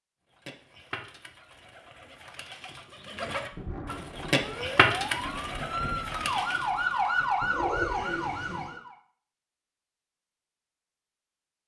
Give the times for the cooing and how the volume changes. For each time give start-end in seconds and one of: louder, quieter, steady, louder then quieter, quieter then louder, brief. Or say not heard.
0.3-8.8 louder then quieter.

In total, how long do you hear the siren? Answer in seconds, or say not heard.
5 s.